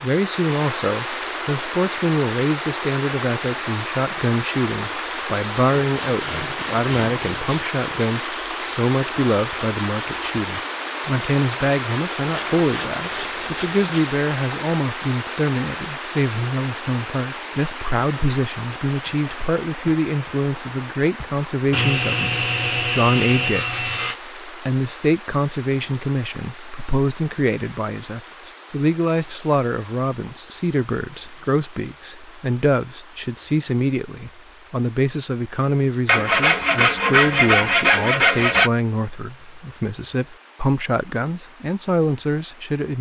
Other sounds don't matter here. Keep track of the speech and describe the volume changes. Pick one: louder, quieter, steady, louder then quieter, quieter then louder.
steady.